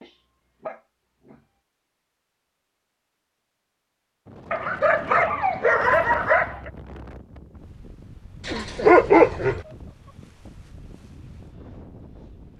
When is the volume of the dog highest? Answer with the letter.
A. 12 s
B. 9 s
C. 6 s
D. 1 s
B.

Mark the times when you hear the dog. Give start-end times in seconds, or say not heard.
0.0-1.4, 4.5-6.7, 8.4-9.7.